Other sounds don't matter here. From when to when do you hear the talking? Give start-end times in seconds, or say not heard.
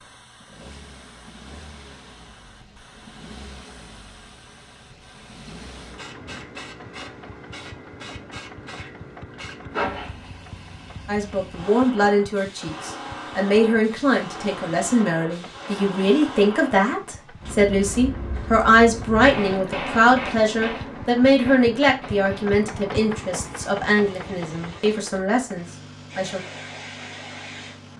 11.1-26.4.